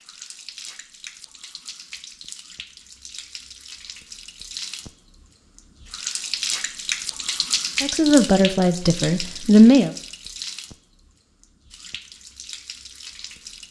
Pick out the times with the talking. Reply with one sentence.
The talking can be heard from 7.8 to 9.9 s.